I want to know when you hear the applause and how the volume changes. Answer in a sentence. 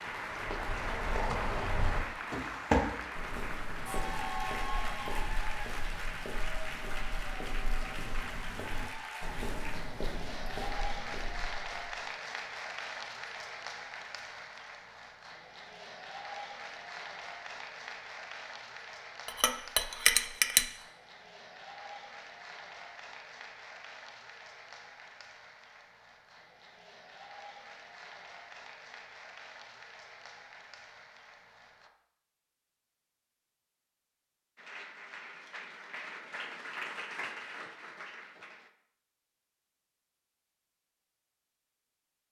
The applause can be heard from 0.0 to 31.9 s, getting quieter; and from 34.5 to 38.7 s, getting louder then quieter.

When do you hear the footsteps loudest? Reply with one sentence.
The loudest moment of the footsteps is at 3 seconds.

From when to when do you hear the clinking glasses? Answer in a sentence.
You can hear the clinking glasses from 19.2 to 20.6 s.